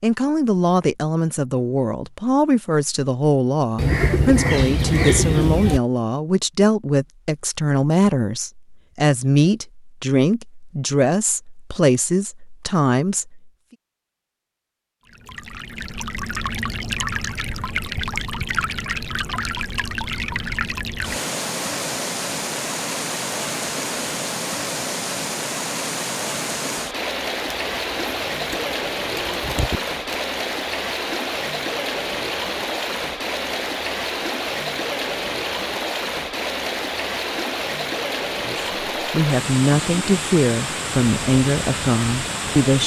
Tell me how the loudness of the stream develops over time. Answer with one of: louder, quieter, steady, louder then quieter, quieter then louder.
steady.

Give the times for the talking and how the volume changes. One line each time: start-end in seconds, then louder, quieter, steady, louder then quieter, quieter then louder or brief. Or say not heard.
0.0-13.4 steady
38.5-42.8 steady.